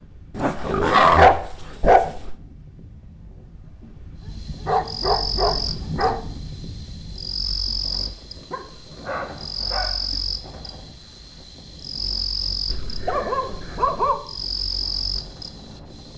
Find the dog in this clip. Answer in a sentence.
The dog can be heard from 0.3 to 2.4 s, from 4.2 to 6.2 s, from 8.5 to 10.2 s and from 12.7 to 14.2 s.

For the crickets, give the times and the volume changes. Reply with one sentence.
The crickets can be heard from 4.3 to 16.1 s, at a steady volume.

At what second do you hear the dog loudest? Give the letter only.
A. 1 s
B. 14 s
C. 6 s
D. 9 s
A.